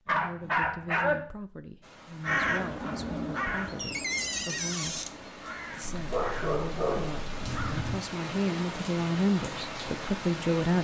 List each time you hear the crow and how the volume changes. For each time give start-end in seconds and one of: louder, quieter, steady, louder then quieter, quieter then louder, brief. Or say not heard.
2.2-8.0 quieter then louder.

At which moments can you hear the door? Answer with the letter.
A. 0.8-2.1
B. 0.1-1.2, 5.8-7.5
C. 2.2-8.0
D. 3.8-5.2
D.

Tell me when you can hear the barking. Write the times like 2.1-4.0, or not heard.
0.1-1.2, 5.8-7.5.